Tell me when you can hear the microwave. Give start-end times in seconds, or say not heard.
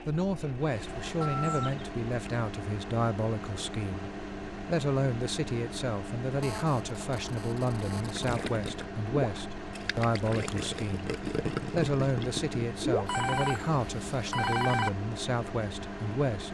0.0-16.4.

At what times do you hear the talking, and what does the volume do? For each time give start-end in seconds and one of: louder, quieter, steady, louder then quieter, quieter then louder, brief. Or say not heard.
0.1-16.4 steady.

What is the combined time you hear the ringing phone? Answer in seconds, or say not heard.
4 s.